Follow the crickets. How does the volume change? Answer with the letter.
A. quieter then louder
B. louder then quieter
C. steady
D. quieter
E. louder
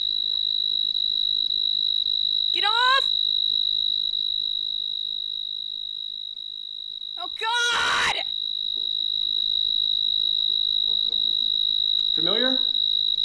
A.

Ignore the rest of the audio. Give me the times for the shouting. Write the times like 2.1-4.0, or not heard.
2.5-3.0, 7.2-8.2.